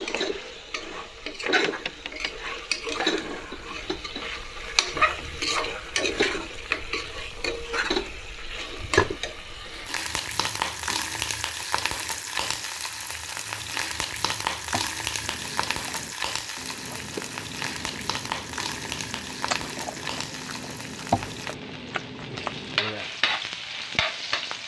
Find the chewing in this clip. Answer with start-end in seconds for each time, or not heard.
15.2-22.8.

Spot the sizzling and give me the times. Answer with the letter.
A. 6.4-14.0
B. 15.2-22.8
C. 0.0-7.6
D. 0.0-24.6
D.